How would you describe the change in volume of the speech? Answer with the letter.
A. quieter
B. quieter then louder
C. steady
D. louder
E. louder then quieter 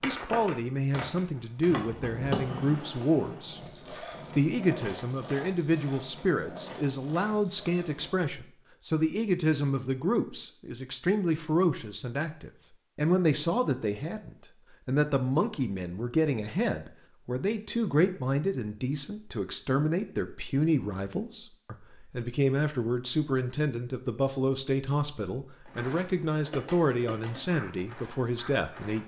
C.